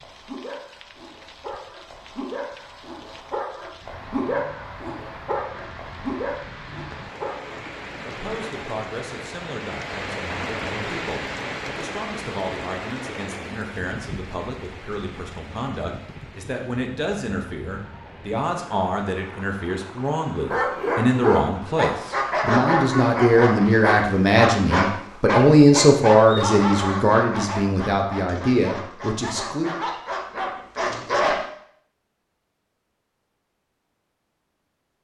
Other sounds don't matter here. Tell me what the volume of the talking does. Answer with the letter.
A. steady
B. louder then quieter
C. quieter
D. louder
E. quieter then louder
D.